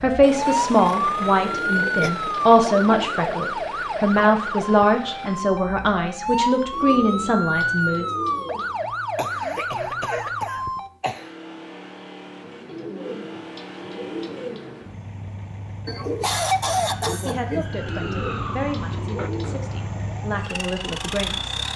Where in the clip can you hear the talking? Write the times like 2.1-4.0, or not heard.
0.0-8.1, 17.2-21.6.